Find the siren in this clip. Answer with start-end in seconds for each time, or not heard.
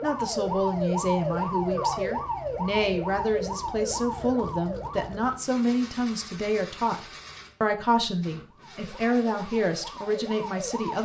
0.0-5.3, 8.4-10.9.